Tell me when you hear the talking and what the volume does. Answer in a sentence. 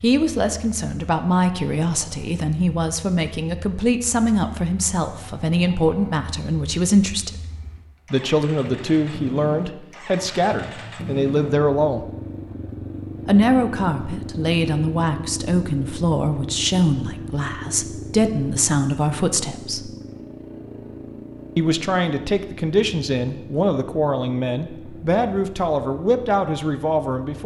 You can hear the talking from 0.0 to 7.3 s, at a steady volume; from 8.1 to 12.1 s, at a steady volume; from 13.2 to 19.9 s, at a steady volume; and from 21.6 to 27.4 s, at a steady volume.